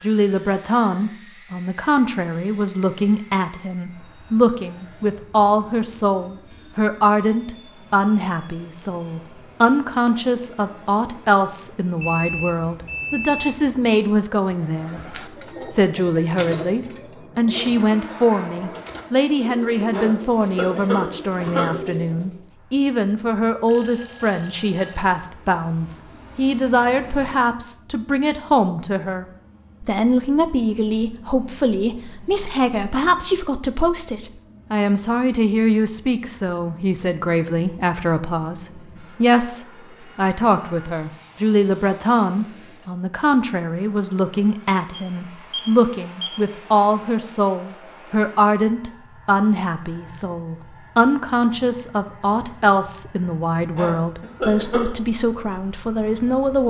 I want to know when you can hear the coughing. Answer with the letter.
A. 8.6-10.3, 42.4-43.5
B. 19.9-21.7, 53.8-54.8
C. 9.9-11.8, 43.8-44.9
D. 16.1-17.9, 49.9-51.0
B.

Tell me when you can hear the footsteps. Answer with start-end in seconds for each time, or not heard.
not heard.